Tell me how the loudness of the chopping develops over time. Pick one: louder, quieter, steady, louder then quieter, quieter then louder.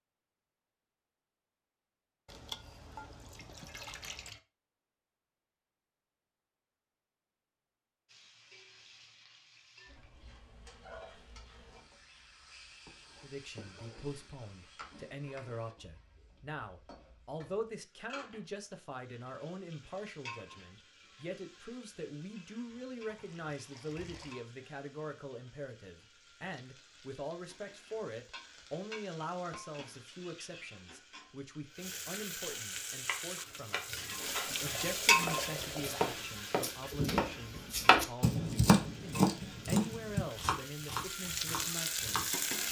louder then quieter.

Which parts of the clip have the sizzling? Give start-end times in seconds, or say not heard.
8.1-42.6.